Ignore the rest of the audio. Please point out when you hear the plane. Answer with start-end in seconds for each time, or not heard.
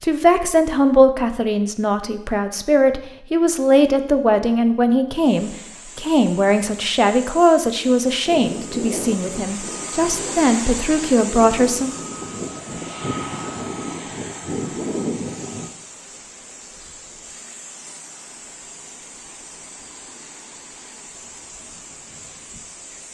8.2-15.7.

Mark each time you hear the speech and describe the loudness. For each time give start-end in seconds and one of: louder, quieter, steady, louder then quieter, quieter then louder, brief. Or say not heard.
0.0-11.9 steady.